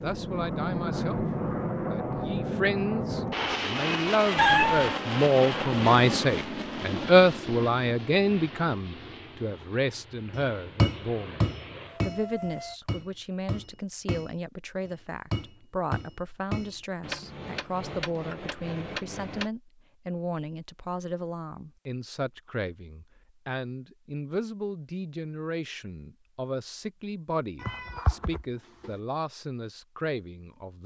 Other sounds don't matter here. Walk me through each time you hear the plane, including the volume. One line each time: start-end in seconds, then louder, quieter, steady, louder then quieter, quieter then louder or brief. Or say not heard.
0.0-12.8 quieter.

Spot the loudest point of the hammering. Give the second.
11 s.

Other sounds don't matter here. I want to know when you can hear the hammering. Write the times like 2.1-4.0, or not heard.
10.3-19.5.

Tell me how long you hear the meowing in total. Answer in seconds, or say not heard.
2 s.